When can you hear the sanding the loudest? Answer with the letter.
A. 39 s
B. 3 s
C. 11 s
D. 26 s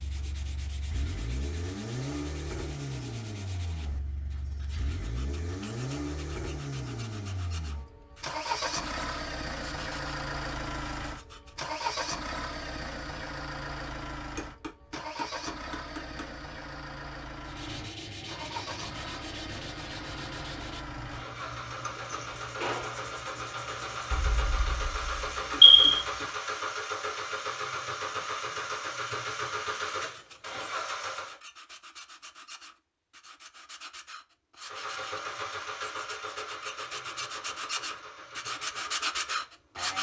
A.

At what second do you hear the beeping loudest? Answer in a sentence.
The loudest moment of the beeping is at 26 seconds.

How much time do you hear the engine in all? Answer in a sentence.
You can hear the engine for 37 seconds altogether.